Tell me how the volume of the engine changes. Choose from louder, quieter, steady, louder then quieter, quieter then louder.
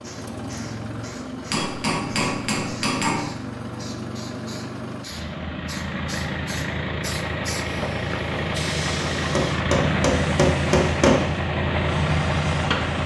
louder.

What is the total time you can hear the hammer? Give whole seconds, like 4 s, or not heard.
4 s.